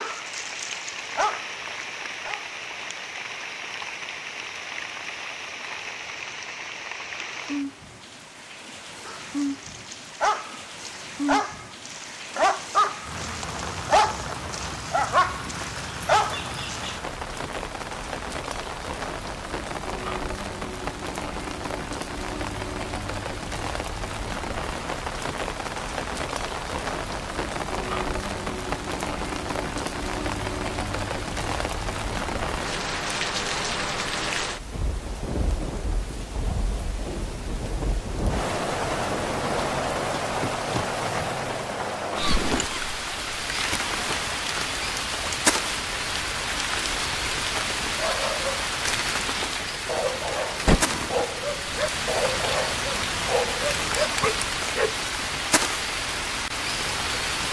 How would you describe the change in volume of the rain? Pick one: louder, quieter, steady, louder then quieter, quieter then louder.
louder.